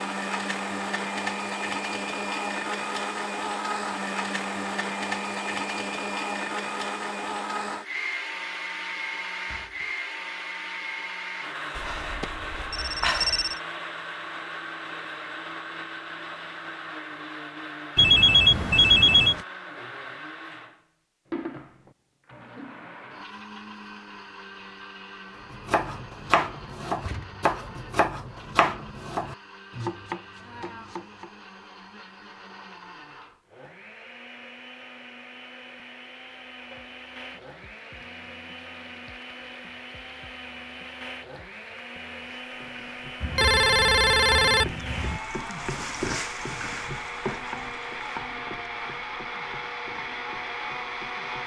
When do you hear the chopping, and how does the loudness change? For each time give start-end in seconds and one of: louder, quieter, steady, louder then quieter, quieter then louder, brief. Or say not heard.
25.5-31.3 quieter.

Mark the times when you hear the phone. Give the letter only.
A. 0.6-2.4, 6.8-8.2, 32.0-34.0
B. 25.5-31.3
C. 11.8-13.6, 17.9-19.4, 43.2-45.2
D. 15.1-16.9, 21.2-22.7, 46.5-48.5
C.